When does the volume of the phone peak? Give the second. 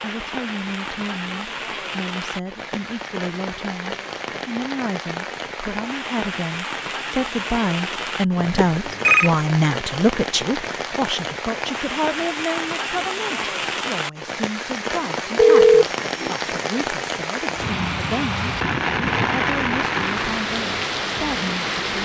16 s.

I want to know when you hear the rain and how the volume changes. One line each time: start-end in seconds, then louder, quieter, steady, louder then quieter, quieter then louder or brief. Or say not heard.
0.0-21.9 louder.